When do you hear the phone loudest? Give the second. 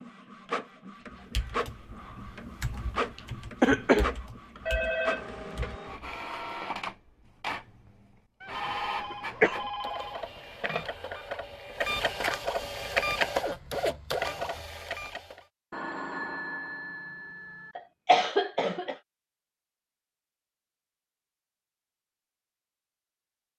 5 s.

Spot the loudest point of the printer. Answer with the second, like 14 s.
13 s.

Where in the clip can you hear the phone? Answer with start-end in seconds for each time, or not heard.
4.7-6.2, 8.6-10.8, 15.7-17.8.